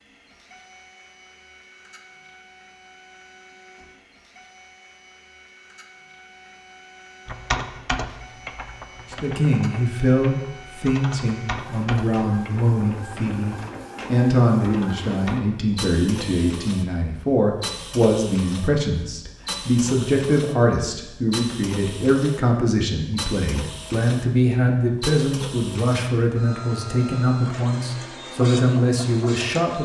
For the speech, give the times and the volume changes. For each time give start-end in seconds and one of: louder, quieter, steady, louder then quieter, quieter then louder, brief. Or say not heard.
9.1-29.8 steady.